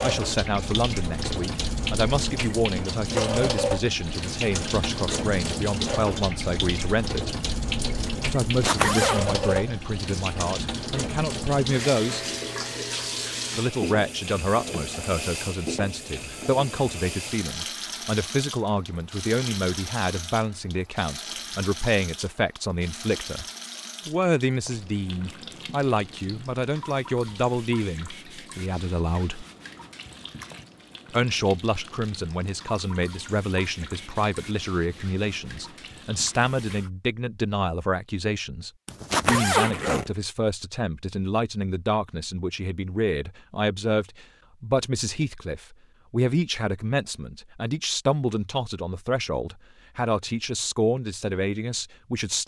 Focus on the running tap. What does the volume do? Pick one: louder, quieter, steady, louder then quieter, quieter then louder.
quieter.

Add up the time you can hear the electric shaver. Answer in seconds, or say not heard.
not heard.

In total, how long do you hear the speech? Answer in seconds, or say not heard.
48 s.